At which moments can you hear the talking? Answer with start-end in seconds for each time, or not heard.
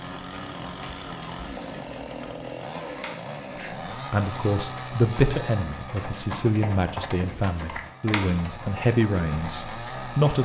3.5-10.3.